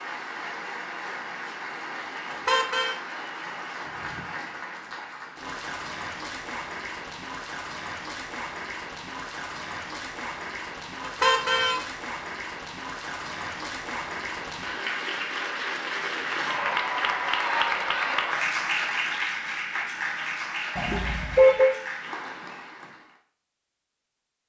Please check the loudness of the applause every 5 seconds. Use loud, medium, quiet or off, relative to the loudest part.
medium, medium, medium, loud, medium.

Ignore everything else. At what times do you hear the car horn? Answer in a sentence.
The car horn can be heard from 2.3 to 3.0 s, from 11.1 to 11.8 s and from 20.8 to 21.8 s.